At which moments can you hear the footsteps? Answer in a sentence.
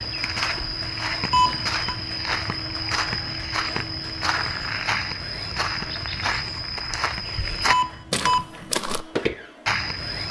You can hear the footsteps from 0.0 to 10.2 s.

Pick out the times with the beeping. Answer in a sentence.
The beeping can be heard from 1.3 to 1.8 s and from 7.7 to 8.4 s.